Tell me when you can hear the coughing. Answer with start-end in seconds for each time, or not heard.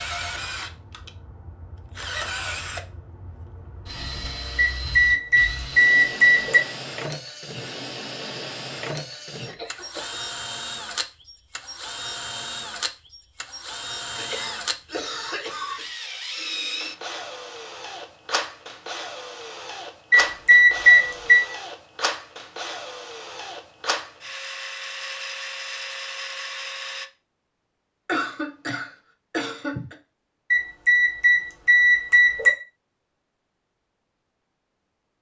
9.4-10.2, 14.2-15.8, 28.1-29.9.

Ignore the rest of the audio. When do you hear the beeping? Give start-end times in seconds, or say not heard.
4.5-6.6, 20.1-21.4, 30.5-32.5.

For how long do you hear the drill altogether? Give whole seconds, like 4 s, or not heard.
27 s.